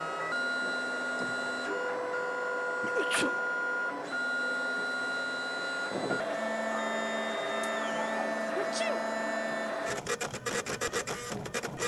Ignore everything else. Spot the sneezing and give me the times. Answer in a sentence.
You can hear the sneezing from 2.8 to 3.6 s and from 8.6 to 9.1 s.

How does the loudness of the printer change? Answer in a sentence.
The loudness of the printer stays about the same.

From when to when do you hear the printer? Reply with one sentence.
The printer can be heard from 0.0 to 11.8 s.